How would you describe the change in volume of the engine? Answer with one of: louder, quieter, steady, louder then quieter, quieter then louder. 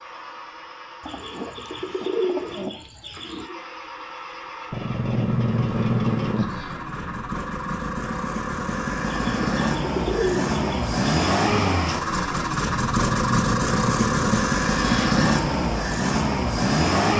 louder.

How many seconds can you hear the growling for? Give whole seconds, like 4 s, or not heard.
5 s.